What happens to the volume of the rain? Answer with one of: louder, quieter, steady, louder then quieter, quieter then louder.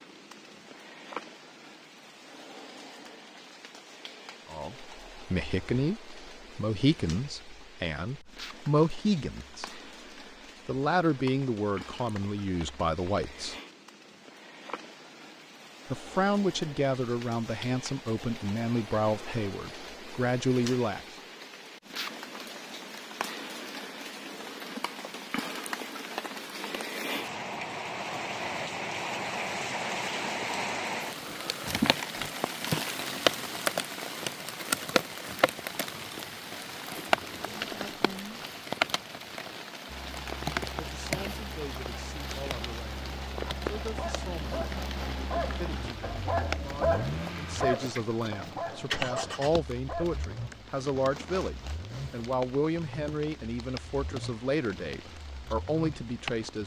louder then quieter.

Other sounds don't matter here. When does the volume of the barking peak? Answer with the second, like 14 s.
47 s.